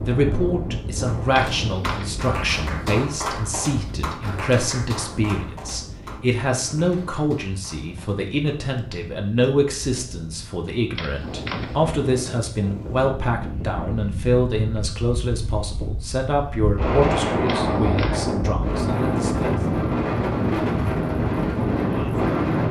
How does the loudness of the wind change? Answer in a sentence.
The loudness of the wind goes down, then up.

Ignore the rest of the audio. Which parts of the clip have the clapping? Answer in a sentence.
The clapping can be heard from 1.2 to 8.8 s.